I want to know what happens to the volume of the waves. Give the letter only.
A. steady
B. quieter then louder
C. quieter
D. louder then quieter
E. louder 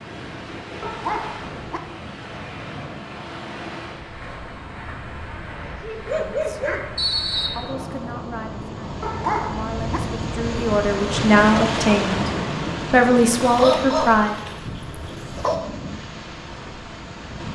D.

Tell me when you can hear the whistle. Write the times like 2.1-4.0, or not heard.
7.0-7.5.